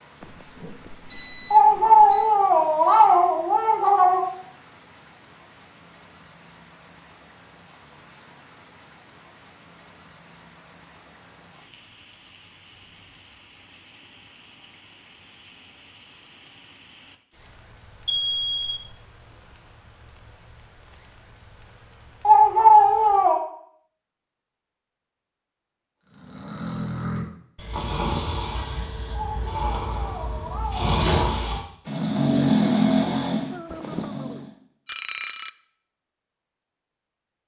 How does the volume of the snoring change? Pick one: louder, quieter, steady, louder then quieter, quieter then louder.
louder.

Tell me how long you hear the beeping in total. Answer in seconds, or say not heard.
5 s.